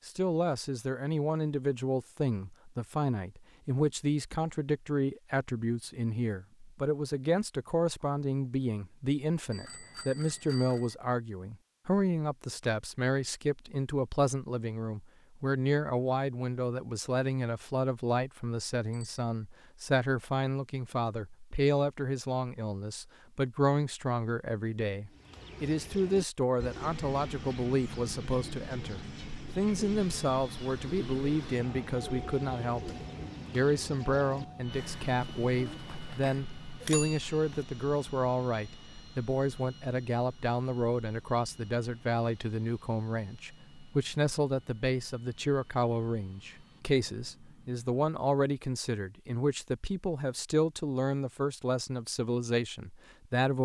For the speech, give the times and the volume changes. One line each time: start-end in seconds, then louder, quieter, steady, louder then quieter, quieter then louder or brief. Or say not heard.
0.1-53.5 steady.